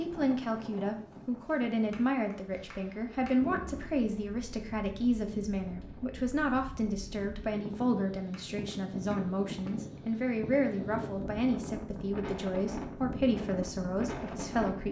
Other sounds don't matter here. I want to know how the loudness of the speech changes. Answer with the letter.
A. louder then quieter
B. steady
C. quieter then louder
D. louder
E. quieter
B.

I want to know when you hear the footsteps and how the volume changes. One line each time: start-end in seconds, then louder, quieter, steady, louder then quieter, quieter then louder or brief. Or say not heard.
not heard.